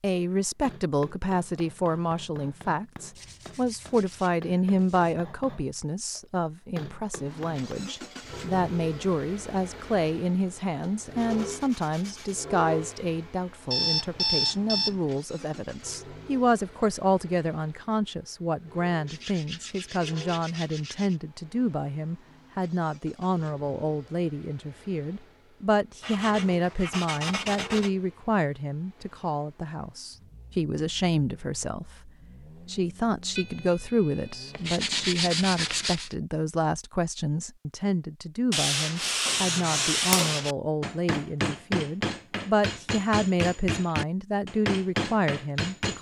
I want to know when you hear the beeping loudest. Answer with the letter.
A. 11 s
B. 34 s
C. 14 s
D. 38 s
C.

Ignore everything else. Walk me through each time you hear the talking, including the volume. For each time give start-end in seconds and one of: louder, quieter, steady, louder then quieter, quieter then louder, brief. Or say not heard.
0.0-45.9 steady.